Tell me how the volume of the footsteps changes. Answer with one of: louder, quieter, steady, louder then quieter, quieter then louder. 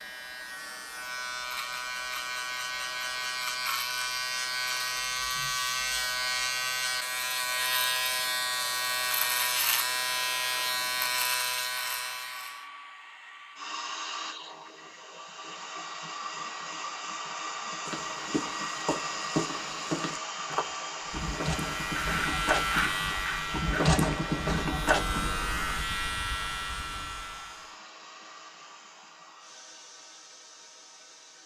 louder.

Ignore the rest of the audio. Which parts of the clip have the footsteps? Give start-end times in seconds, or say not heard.
17.9-25.4.